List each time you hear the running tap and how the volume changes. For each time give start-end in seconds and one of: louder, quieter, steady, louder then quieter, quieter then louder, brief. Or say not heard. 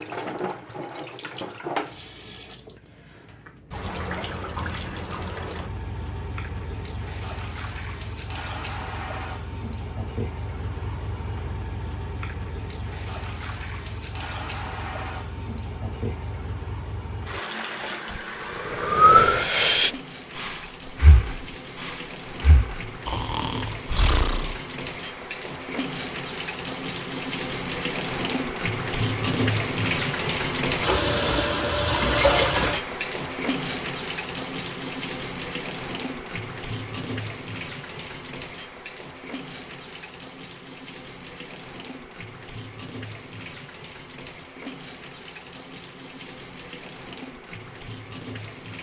0.0-48.7 louder then quieter.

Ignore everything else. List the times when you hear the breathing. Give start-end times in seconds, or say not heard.
18.1-24.6.